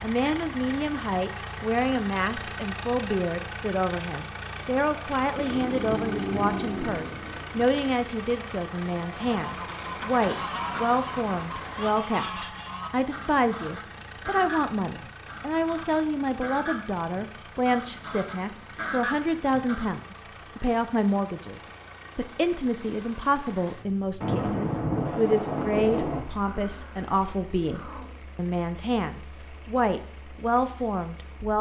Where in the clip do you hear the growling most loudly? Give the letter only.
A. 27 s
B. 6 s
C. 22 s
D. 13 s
B.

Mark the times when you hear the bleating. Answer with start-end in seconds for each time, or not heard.
not heard.